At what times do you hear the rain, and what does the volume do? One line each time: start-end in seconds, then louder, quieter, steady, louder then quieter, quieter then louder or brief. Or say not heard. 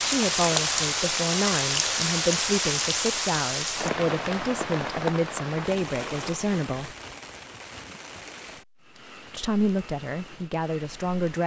0.0-11.4 quieter.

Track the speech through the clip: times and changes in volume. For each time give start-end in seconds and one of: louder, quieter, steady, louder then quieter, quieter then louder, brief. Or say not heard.
0.0-7.0 steady
9.3-11.4 brief.